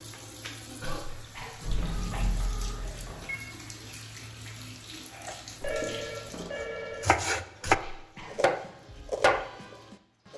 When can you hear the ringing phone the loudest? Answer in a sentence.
The loudest moment of the ringing phone is at 6 seconds.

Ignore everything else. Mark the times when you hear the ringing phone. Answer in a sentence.
The ringing phone can be heard from 1.6 to 3.5 s and from 5.6 to 7.2 s.